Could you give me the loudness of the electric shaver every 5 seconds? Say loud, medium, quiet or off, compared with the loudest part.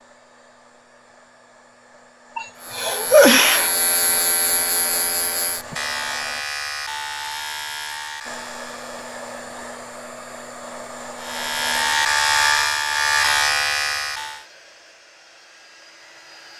medium, medium, loud, off.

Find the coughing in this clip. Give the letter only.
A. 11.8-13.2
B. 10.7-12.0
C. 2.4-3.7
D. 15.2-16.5
C.